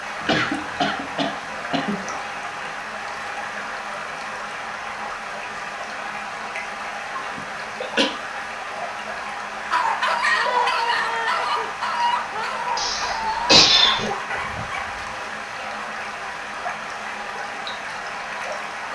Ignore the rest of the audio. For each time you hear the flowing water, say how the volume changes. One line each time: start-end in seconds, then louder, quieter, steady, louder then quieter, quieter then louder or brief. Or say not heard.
0.0-18.8 steady.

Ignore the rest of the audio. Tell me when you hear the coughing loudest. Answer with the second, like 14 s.
14 s.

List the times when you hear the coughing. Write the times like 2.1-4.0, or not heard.
0.2-2.1, 7.3-8.1, 12.8-14.1.